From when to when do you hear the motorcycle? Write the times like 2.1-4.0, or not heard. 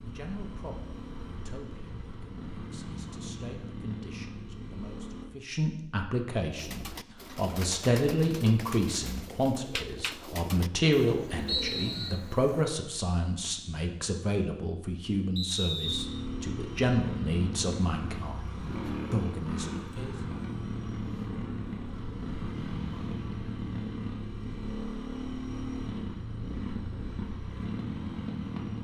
0.0-5.3, 15.8-28.7.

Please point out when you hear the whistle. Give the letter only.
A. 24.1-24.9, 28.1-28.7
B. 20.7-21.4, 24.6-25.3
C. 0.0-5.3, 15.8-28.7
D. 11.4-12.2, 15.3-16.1
D.